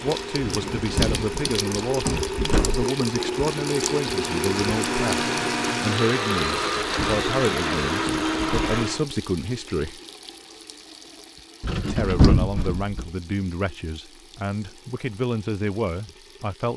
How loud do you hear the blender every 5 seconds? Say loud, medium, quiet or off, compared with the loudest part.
medium, loud, off, off.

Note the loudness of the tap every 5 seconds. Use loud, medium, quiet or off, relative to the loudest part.
loud, medium, quiet, quiet.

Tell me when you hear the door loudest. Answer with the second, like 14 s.
12 s.